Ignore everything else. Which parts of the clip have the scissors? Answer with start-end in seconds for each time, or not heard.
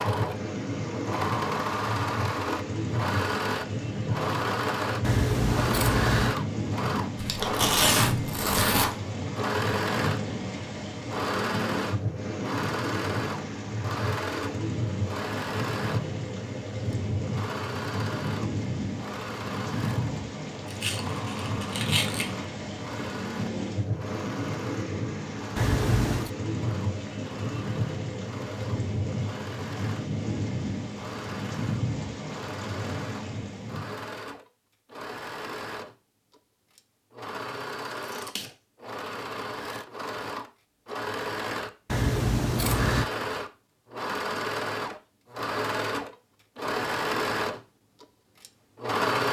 5.0-6.3, 25.6-26.3, 41.9-43.1.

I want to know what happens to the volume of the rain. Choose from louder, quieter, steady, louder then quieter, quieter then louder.
steady.